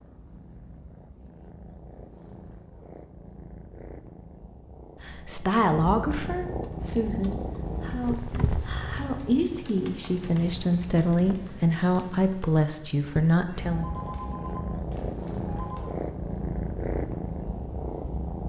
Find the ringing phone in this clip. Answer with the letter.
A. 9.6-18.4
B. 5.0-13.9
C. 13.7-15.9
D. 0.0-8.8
C.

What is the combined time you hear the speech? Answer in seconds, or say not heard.
9 s.